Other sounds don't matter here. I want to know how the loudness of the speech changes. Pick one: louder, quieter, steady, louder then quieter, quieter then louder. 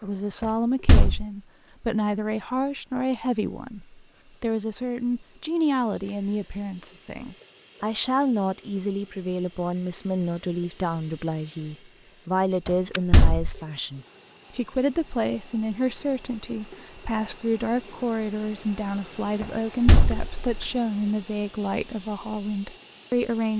steady.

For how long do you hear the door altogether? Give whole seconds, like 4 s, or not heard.
3 s.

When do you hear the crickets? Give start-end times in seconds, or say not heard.
0.0-23.5.